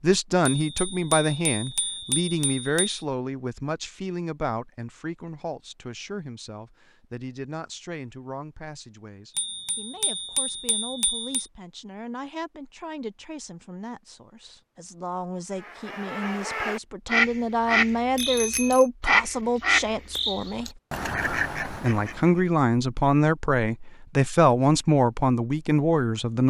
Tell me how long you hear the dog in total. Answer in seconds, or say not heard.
not heard.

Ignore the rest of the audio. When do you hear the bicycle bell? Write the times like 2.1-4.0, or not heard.
0.6-3.0, 9.3-11.4, 18.1-18.9.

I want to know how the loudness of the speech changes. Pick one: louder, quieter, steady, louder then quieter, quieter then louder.
quieter then louder.